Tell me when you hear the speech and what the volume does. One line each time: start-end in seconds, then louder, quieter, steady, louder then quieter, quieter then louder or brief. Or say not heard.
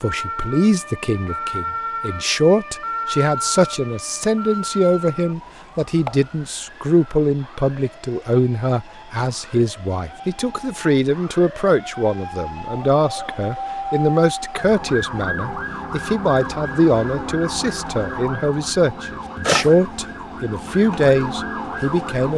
0.0-22.3 steady.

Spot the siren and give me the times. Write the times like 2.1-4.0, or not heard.
0.0-22.3.